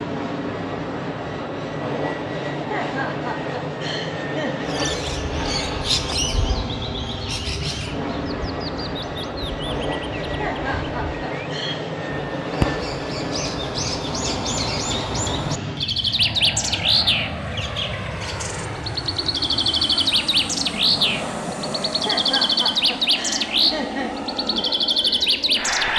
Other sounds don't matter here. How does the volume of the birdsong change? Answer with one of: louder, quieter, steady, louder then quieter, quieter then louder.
louder.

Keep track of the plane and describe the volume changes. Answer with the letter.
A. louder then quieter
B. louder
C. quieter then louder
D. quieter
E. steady
E.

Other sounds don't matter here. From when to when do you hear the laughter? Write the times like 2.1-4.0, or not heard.
2.5-4.7, 10.2-11.8, 21.9-24.1.